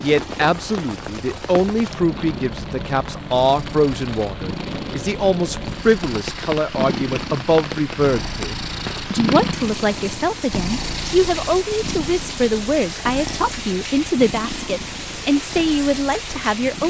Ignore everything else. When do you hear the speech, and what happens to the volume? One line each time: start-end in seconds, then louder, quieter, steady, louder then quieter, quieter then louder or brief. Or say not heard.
0.0-16.8 steady.